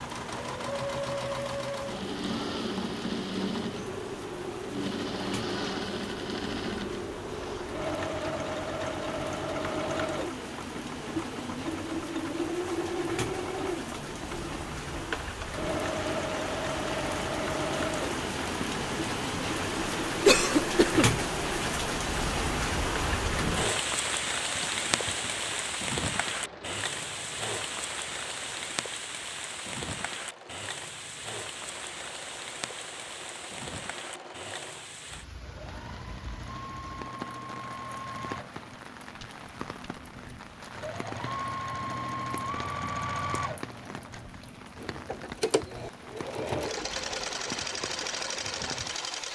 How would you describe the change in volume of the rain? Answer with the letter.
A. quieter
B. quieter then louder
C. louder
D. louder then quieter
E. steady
D.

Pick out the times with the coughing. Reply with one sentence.
You can hear the coughing from 20.2 to 21.1 s.